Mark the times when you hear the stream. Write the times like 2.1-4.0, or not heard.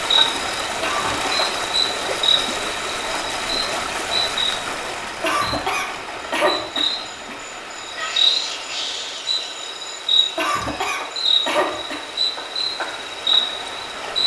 0.0-14.2.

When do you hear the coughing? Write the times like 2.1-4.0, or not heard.
0.8-1.5, 5.2-7.3, 10.3-12.1.